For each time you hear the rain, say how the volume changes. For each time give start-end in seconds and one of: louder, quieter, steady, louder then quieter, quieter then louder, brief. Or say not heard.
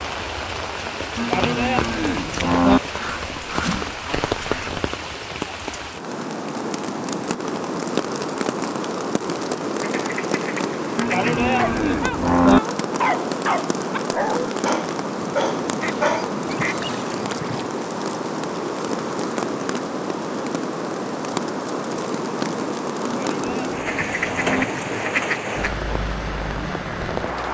0.0-27.4 steady.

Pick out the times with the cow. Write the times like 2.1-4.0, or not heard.
1.1-2.8, 10.9-12.6, 23.1-24.6.